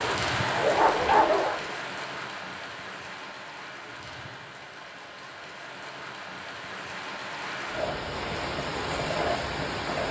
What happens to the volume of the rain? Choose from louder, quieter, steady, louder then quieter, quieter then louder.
quieter then louder.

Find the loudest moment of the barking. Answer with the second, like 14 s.
1 s.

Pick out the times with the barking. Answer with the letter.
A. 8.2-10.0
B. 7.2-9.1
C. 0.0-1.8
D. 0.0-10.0
C.